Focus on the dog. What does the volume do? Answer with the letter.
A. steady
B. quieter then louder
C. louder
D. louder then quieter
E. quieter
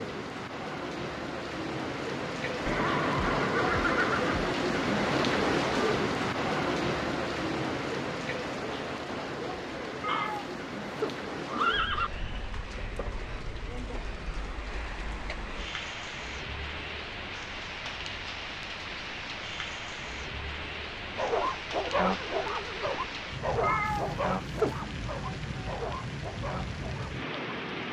E.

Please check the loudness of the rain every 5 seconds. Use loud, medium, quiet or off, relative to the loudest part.
loud, loud, medium, medium, medium, medium.